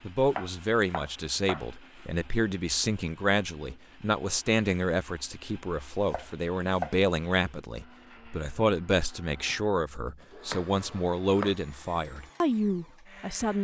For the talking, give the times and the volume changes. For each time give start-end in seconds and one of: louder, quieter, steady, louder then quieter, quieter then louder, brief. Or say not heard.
0.0-13.5 steady.